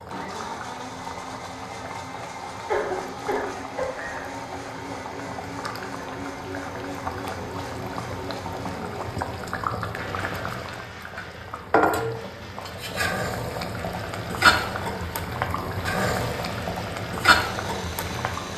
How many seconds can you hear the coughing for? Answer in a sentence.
You can hear the coughing for 2 seconds altogether.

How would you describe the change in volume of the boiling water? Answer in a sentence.
The volume of the boiling water goes up.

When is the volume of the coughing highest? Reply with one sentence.
The loudest moment of the coughing is at 3 seconds.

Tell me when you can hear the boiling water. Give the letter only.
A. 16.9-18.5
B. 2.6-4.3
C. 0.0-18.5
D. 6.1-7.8
C.